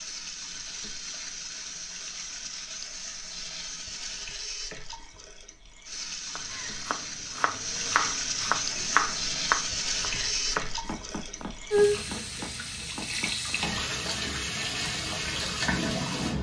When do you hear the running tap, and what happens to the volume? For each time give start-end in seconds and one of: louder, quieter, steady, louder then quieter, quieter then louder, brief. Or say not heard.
0.0-16.3 louder.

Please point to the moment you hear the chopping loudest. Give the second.
9 s.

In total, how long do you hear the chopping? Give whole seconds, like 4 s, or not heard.
7 s.